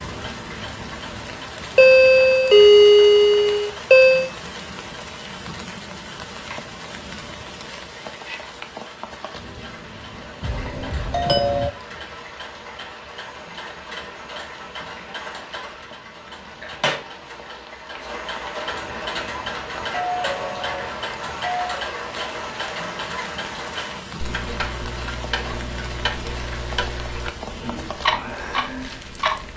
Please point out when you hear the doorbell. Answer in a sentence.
You can hear the doorbell from 1.8 to 4.3 s, from 10.4 to 11.7 s and from 19.8 to 21.9 s.